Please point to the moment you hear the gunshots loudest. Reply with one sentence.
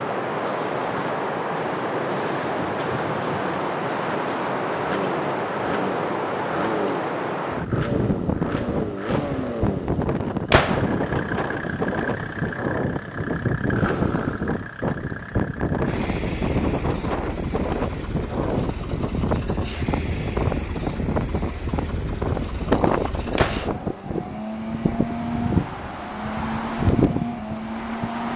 The loudest moment of the gunshots is at 11 seconds.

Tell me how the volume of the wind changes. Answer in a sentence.
The loudness of the wind stays about the same.